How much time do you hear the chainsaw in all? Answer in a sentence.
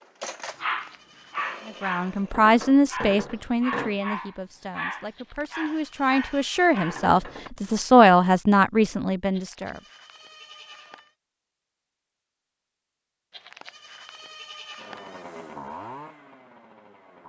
You can hear the chainsaw for 5 seconds altogether.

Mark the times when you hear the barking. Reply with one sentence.
The barking can be heard from 0.6 to 7.5 s.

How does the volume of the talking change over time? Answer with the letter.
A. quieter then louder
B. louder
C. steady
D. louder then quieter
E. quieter
A.